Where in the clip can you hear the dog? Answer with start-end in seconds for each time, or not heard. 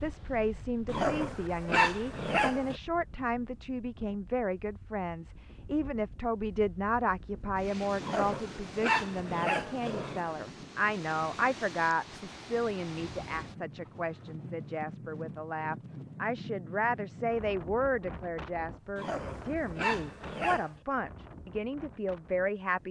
0.8-2.8, 8.0-10.3, 18.9-20.7.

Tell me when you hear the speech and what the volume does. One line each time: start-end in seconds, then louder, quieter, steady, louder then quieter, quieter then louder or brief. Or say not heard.
0.0-22.8 steady.